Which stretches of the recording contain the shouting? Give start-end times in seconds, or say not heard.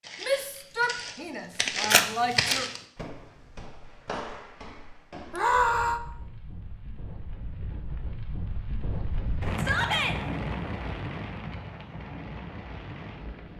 0.2-2.7, 5.3-6.0, 9.6-10.2.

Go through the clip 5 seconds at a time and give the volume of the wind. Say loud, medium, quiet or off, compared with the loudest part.
off, loud, loud.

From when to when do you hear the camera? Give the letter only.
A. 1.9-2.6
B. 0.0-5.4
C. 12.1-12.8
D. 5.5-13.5
A.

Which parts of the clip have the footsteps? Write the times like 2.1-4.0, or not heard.
0.0-5.4.